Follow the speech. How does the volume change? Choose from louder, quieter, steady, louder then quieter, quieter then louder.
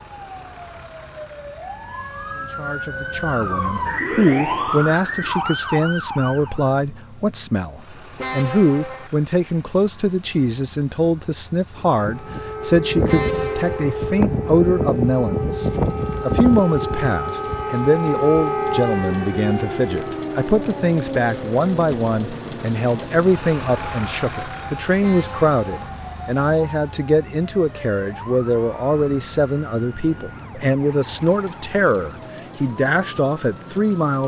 steady.